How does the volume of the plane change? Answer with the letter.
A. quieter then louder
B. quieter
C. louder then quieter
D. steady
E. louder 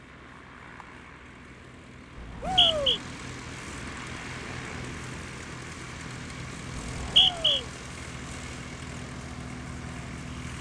E.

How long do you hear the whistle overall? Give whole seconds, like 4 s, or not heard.
2 s.